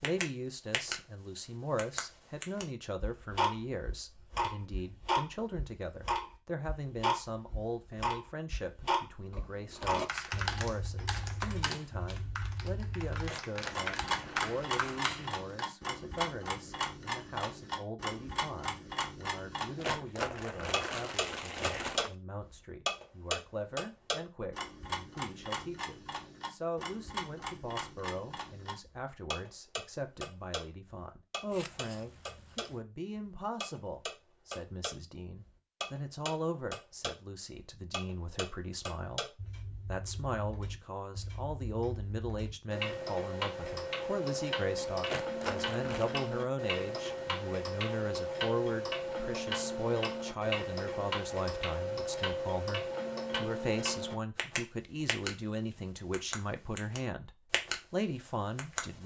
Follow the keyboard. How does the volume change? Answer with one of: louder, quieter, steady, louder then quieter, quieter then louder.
quieter then louder.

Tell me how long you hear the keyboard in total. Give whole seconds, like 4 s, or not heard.
6 s.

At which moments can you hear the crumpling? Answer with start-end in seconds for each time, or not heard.
13.2-15.4, 19.8-22.1, 45.0-46.1.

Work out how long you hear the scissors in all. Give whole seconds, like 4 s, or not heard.
2 s.